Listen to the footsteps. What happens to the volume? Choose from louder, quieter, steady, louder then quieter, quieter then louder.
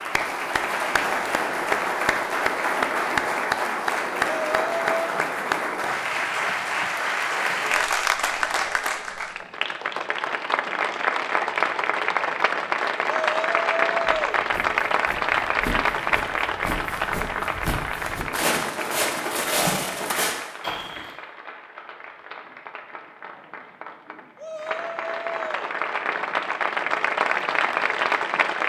louder.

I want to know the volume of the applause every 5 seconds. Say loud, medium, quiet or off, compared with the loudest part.
loud, loud, loud, loud, quiet, loud.